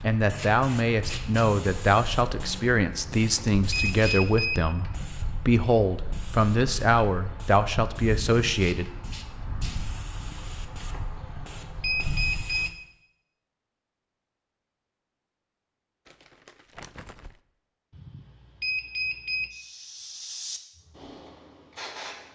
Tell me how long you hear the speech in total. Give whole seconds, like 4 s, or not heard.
9 s.